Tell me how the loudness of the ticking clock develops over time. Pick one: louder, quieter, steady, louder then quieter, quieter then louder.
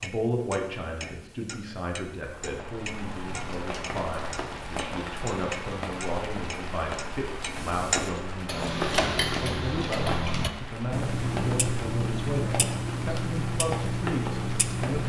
louder.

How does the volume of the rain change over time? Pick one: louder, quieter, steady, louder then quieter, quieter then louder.
steady.